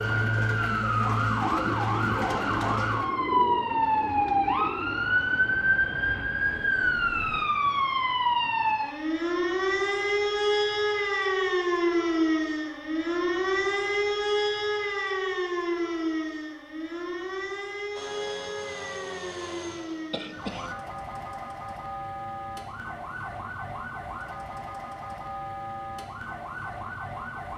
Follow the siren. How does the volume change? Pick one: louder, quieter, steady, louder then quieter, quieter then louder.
quieter.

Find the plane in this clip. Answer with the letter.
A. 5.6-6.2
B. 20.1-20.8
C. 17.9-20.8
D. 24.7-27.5
C.